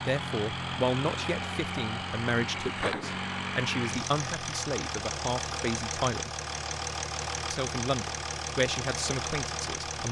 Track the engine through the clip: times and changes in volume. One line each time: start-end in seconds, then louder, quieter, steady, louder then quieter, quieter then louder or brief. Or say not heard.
0.0-10.0 steady.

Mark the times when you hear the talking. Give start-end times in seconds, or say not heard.
0.0-6.3, 7.5-10.0.